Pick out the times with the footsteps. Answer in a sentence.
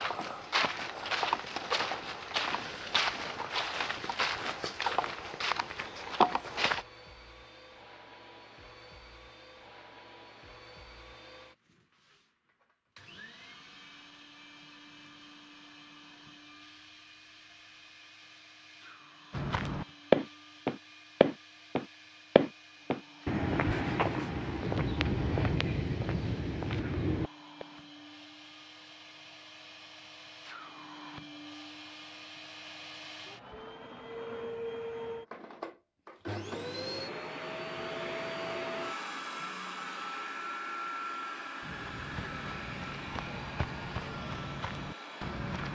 You can hear the footsteps from 0.0 to 6.8 s, from 19.3 to 27.6 s and from 41.6 to 45.7 s.